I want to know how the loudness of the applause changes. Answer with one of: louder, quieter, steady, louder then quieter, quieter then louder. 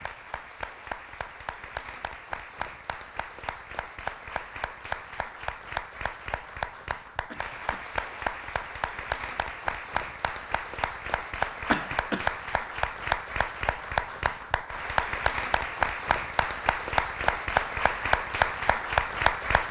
louder.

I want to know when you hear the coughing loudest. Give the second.
12 s.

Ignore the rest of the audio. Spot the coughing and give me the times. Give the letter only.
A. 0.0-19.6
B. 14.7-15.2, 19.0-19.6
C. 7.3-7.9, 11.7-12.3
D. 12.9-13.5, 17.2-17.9
C.